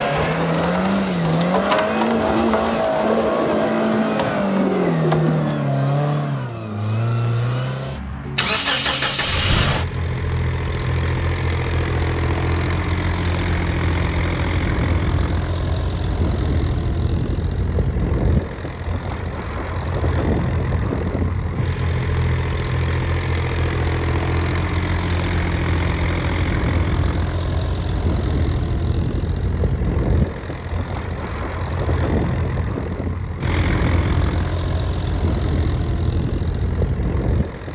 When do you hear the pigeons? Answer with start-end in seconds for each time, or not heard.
0.1-5.6.